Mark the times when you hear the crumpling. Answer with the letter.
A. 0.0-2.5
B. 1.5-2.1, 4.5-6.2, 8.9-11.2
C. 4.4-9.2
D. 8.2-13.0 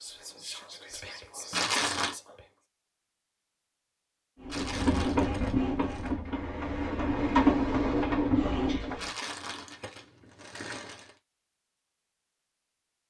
B.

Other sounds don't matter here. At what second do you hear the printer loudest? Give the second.
8 s.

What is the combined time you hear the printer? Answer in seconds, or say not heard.
5 s.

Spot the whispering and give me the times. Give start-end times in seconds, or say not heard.
0.0-2.5.